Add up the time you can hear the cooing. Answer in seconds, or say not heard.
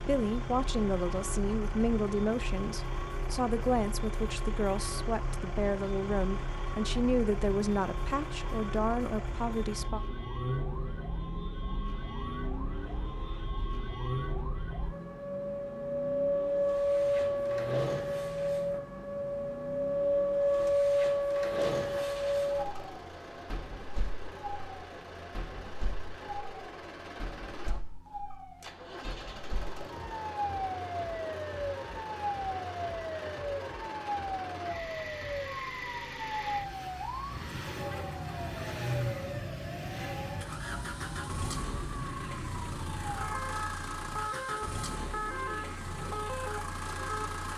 not heard.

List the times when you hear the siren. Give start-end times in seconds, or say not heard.
0.1-47.5.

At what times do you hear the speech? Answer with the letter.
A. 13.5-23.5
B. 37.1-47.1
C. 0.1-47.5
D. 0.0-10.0
D.